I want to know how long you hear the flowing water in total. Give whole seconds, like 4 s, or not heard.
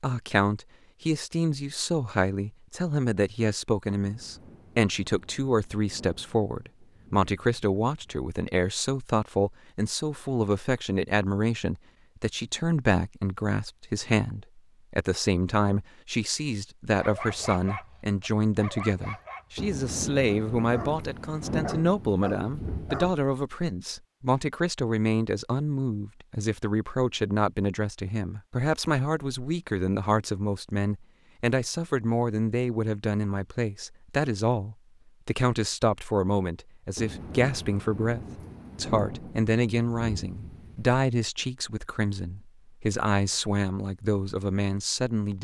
not heard.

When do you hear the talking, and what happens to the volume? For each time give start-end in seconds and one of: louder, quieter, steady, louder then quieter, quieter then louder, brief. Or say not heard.
0.0-45.3 steady.